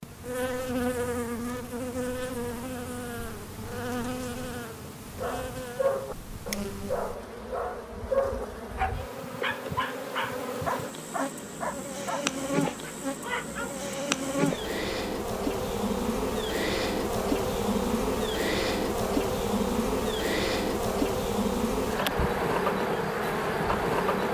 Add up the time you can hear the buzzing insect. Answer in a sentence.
You can hear the buzzing insect for 24 seconds altogether.